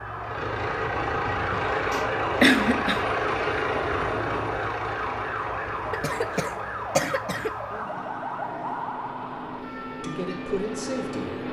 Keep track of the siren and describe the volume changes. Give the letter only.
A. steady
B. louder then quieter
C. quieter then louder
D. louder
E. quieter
E.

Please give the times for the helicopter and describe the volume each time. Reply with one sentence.
The helicopter can be heard from 0.1 to 11.4 s, getting quieter then louder.